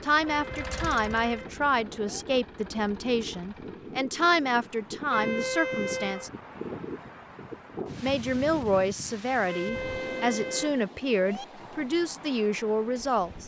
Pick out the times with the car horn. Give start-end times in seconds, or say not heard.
0.2-2.2, 5.1-6.3, 9.4-11.4.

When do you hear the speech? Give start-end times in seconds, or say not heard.
0.0-6.3, 8.0-13.4.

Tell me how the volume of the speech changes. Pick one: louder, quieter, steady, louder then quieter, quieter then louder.
steady.